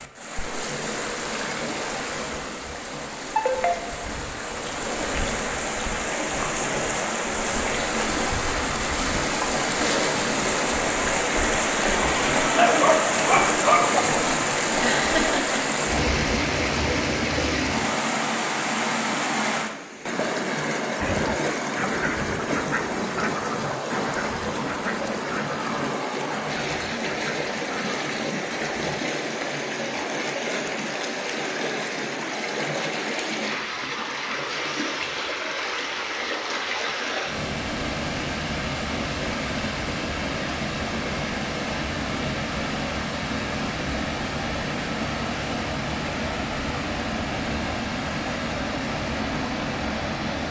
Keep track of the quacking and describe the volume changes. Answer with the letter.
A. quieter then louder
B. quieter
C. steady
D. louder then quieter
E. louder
B.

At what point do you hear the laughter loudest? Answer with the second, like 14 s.
15 s.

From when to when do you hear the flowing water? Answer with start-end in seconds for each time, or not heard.
0.0-50.4.